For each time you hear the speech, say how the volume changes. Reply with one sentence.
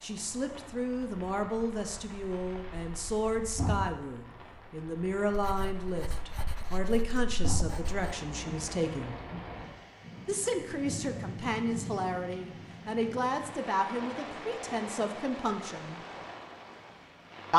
The speech can be heard from 0.0 to 9.2 s, at a steady volume; and from 10.2 to 16.0 s, at a steady volume.